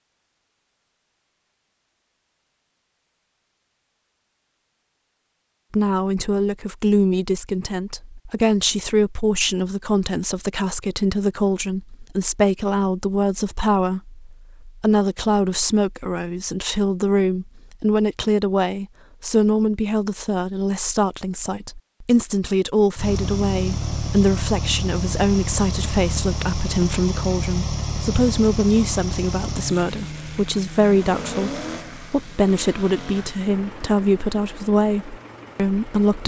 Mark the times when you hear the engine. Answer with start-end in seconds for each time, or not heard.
22.9-36.2.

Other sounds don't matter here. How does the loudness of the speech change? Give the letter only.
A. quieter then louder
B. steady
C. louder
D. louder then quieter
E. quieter
B.